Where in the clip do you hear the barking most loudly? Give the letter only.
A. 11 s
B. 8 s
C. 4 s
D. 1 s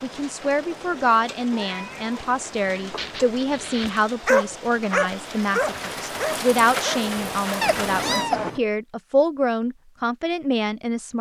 C.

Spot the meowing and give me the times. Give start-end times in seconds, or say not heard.
1.5-3.5, 7.6-8.6.